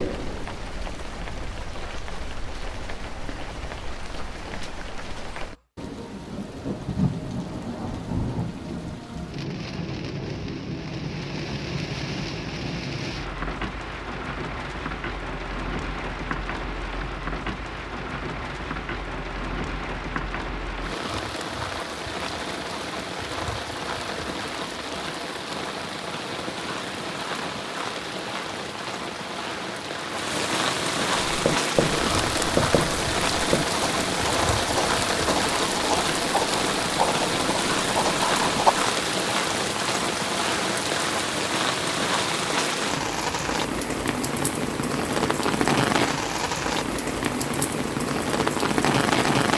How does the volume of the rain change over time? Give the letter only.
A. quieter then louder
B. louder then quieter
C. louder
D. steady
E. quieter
C.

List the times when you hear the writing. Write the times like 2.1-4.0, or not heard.
31.2-38.9.